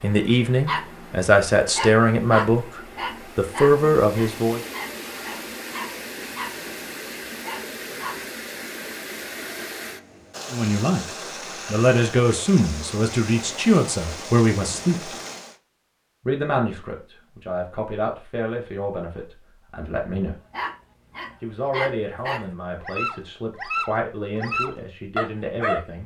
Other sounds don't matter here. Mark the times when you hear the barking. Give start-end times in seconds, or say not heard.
0.7-1.1, 1.8-8.2, 20.5-25.9.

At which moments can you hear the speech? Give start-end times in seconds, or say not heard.
0.0-4.6, 10.5-11.1, 11.7-15.1, 16.2-20.4, 21.4-26.0.